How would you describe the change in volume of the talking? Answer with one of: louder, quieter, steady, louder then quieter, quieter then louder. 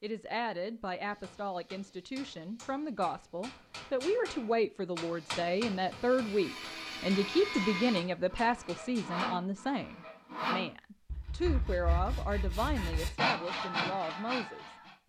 louder then quieter.